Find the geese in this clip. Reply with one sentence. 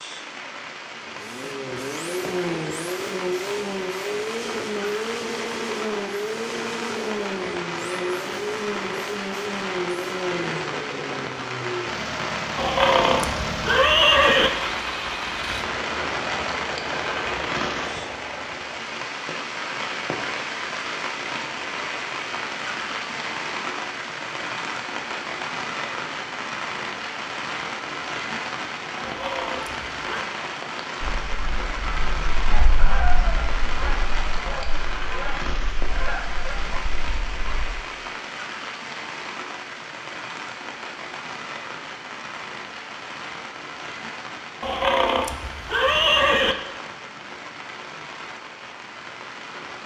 You can hear the geese from 31.0 to 37.7 s.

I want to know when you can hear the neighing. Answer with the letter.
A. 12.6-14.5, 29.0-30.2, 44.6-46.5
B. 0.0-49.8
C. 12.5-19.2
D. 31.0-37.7
A.